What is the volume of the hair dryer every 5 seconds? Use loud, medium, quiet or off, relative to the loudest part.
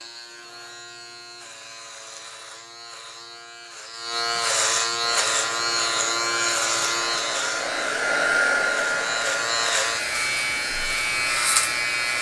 off, loud, medium.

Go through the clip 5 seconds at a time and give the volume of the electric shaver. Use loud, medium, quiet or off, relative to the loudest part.
medium, loud, loud.